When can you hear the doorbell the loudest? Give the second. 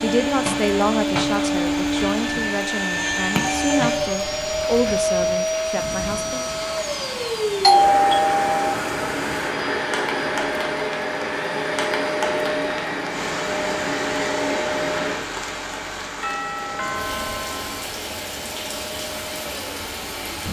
8 s.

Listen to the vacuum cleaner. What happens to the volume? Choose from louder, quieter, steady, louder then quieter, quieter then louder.
quieter.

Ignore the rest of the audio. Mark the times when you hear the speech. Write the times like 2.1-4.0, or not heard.
0.0-6.5.